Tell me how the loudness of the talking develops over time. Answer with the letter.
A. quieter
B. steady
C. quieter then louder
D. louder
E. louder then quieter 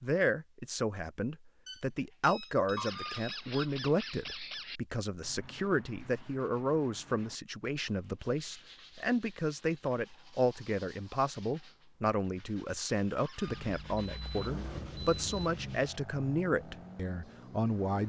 B.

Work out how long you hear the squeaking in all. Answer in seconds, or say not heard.
3 s.